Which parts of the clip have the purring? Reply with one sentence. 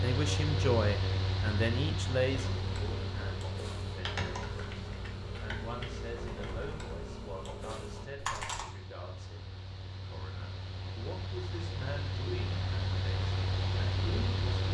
You can't hear the purring here.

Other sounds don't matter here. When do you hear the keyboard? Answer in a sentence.
The keyboard can be heard from 2.3 to 8.7 s.